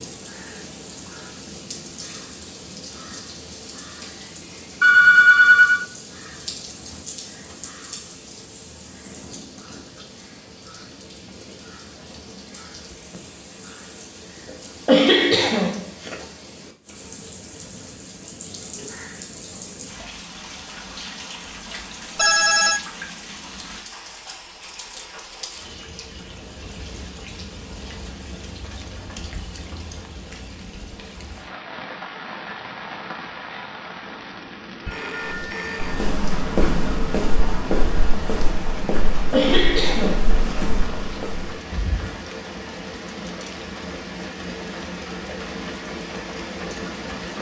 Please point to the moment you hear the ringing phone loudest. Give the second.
5 s.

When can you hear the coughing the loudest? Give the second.
15 s.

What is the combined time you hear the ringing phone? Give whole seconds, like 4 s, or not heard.
3 s.